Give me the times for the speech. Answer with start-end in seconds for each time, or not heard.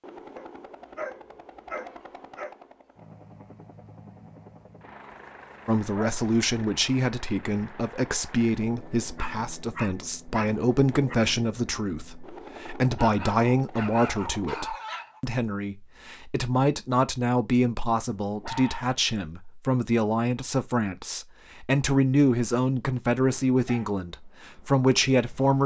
5.7-25.6.